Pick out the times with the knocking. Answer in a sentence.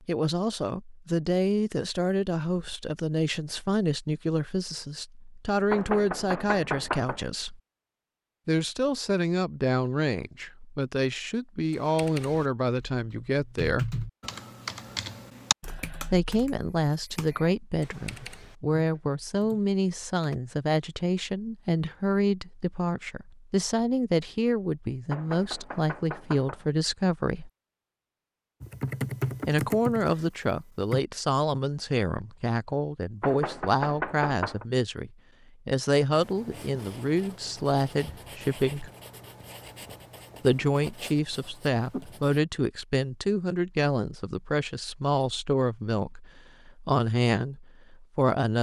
You can hear the knocking from 5.7 to 7.2 s, from 25.1 to 26.6 s and from 33.2 to 34.6 s.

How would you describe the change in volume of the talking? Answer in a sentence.
The loudness of the talking stays about the same.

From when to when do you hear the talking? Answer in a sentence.
The talking can be heard from 0.1 to 7.6 s, from 8.4 to 14.1 s, from 16.1 to 27.5 s, from 29.4 to 38.9 s and from 40.4 to 48.5 s.